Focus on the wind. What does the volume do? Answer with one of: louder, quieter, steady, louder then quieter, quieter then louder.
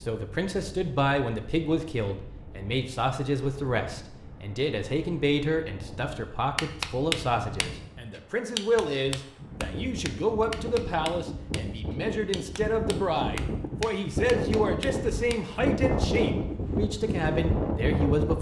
louder.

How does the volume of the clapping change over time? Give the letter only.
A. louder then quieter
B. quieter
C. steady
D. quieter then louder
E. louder
B.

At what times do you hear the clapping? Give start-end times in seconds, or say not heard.
6.5-15.4.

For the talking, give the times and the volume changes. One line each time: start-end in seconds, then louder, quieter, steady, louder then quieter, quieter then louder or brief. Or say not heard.
0.0-18.3 steady.